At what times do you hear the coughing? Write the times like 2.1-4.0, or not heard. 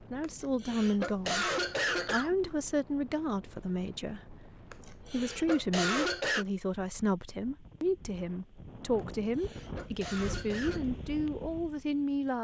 0.2-2.4, 4.7-6.5, 9.2-10.8.